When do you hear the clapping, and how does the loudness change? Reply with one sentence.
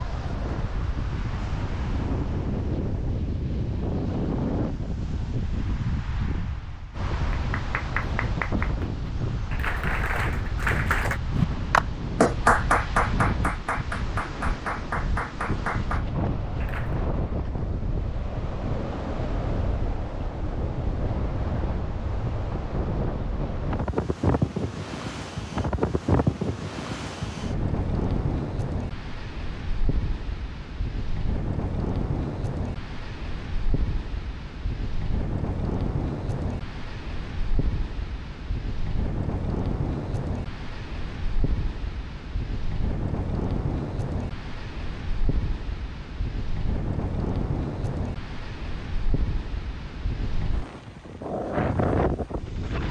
You can hear the clapping from 7.3 to 17.0 s, getting louder then quieter.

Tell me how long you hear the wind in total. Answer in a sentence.
The wind can be heard for 53 seconds in total.